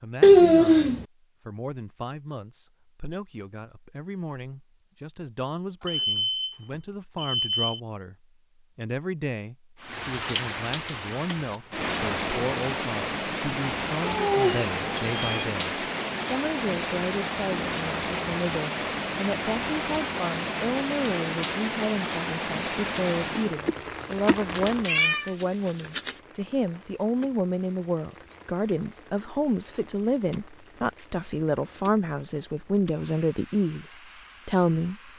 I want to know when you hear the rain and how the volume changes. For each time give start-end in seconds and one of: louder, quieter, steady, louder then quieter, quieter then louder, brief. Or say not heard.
9.8-35.1 quieter.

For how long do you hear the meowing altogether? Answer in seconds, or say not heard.
4 s.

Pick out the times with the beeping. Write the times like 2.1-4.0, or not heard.
5.8-7.8.